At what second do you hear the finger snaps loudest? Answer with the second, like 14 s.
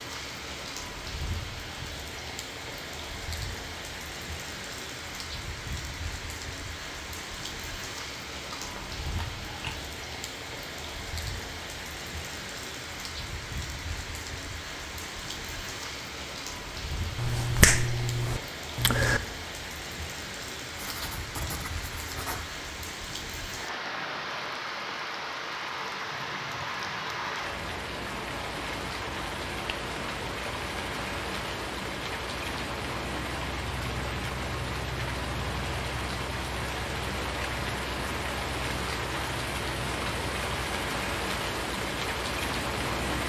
18 s.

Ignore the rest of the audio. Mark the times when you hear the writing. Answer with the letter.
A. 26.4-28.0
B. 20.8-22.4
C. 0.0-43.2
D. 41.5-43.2
B.